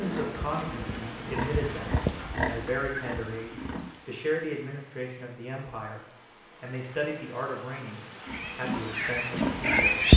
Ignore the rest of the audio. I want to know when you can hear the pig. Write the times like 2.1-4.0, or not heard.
0.0-4.0, 8.2-10.1.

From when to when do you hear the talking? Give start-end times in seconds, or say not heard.
0.0-10.1.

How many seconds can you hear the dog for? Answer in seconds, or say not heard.
not heard.